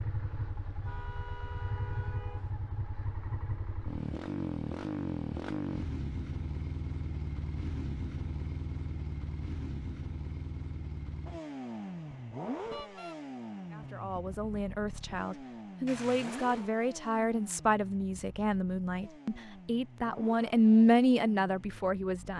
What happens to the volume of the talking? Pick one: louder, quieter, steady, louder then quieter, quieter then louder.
louder.